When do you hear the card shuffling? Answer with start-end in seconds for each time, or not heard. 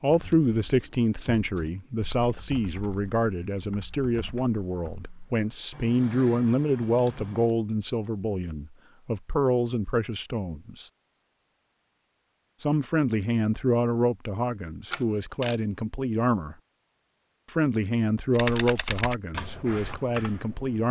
14.9-15.6.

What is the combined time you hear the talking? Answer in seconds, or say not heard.
18 s.